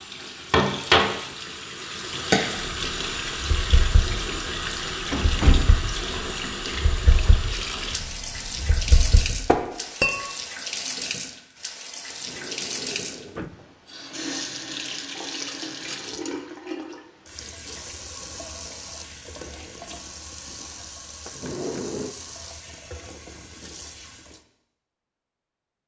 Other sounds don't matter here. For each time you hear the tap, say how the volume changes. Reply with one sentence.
You can hear the tap from 0.0 to 24.4 s, getting quieter.